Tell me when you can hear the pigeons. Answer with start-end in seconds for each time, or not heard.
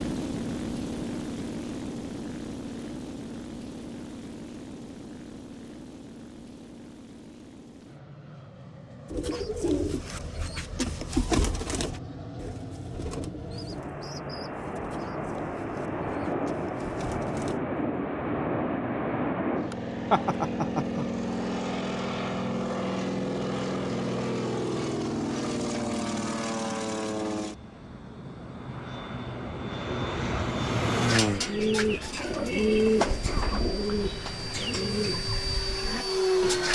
9.1-17.6, 31.1-36.6.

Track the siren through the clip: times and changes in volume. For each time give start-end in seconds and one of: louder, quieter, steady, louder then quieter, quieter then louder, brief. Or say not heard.
not heard.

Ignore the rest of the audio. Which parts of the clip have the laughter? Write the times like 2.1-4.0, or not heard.
20.1-21.1.